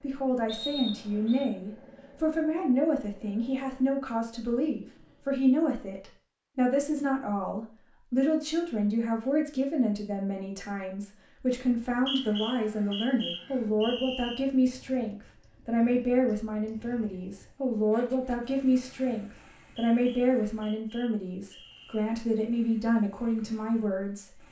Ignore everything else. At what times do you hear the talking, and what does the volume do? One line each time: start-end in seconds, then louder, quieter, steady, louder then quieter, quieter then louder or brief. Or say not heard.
0.0-24.4 steady.